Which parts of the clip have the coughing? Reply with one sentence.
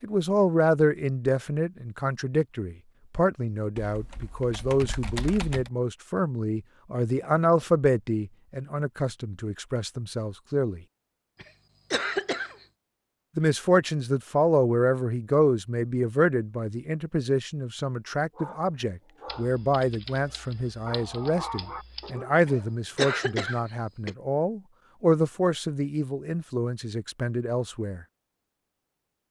The coughing can be heard from 11.4 to 12.7 s and from 22.4 to 24.1 s.